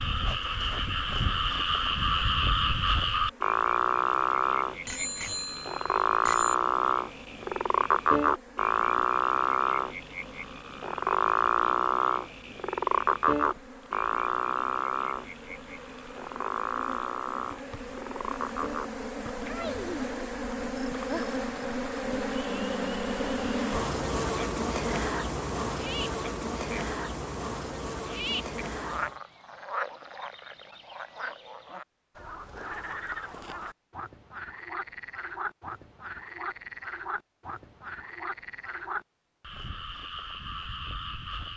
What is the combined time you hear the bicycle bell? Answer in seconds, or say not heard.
2 s.